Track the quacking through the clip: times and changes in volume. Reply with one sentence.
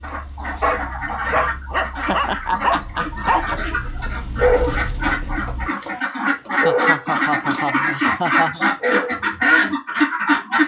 You can hear the quacking from 0.0 to 10.6 s, getting louder.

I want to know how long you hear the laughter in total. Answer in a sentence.
The laughter can be heard for 4 seconds in total.